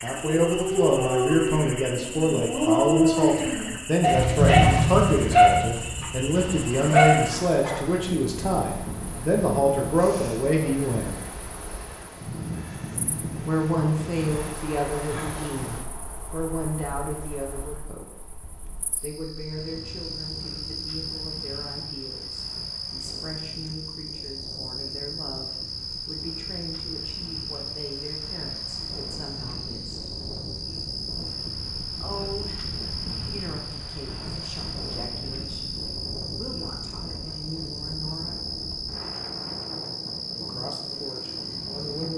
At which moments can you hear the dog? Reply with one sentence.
The dog can be heard from 0.3 to 7.8 s.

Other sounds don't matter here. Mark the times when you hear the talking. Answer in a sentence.
The talking can be heard from 0.0 to 11.1 s, from 13.4 to 18.4 s, from 19.0 to 30.1 s, from 31.9 to 38.4 s and from 40.4 to 42.1 s.